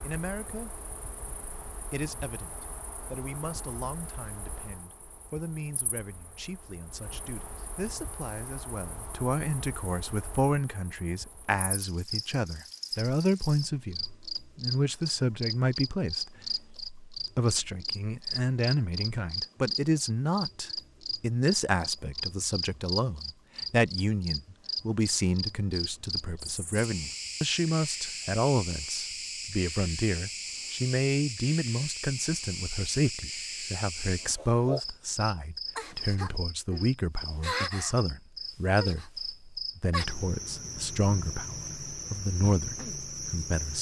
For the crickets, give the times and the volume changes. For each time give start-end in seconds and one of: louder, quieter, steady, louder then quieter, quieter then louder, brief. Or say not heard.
0.0-43.7 louder.